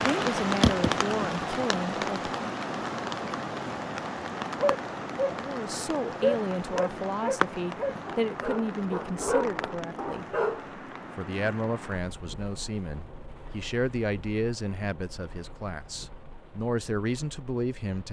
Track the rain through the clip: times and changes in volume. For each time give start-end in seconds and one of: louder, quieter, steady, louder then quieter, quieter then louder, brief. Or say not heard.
0.0-18.0 quieter.